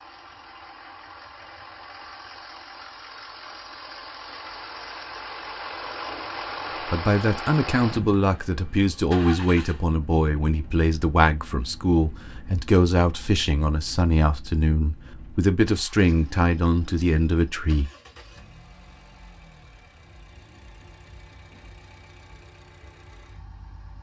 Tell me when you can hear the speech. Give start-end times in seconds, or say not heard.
6.9-17.9.